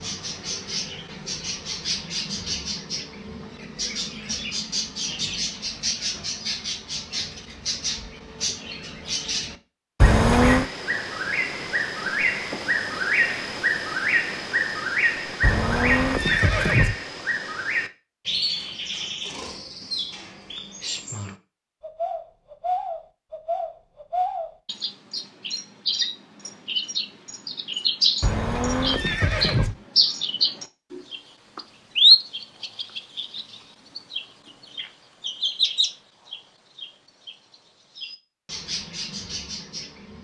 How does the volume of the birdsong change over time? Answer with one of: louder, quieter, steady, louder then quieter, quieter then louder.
louder.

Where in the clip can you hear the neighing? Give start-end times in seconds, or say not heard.
10.0-10.7, 15.4-16.9, 28.2-29.8.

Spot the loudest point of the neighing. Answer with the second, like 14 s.
10 s.